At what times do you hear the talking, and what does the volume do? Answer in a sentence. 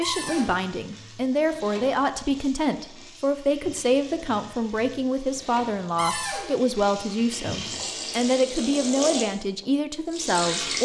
The talking can be heard from 0.0 to 10.8 s, at a steady volume.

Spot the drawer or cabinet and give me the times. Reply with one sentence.
The drawer or cabinet can be heard from 0.0 to 0.6 s and from 6.0 to 6.5 s.